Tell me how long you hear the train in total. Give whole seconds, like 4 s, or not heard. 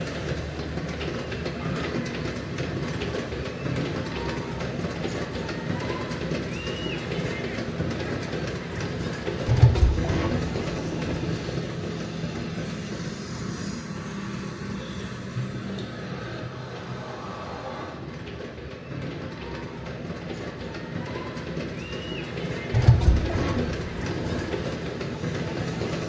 26 s.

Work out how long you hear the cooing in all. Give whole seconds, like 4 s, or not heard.
4 s.